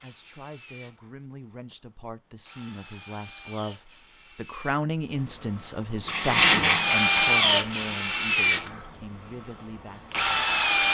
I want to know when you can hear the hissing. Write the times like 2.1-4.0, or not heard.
6.0-7.6.